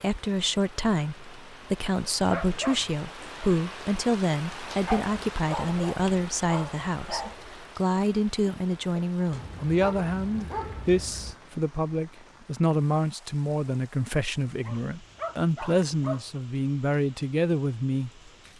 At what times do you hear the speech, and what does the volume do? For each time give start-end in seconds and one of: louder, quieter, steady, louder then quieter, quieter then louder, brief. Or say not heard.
0.0-18.1 steady.